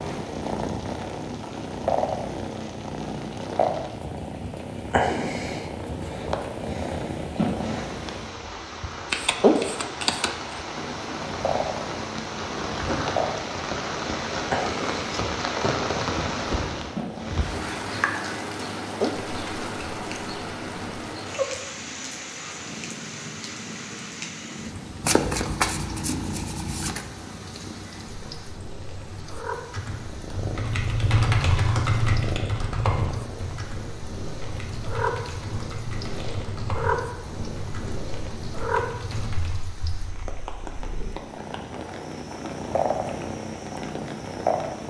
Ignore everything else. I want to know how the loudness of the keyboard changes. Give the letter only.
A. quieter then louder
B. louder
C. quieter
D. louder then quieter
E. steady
C.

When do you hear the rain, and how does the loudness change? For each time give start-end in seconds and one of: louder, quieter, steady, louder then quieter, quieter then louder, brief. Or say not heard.
0.0-44.8 louder then quieter.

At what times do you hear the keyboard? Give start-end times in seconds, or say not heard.
29.7-39.6.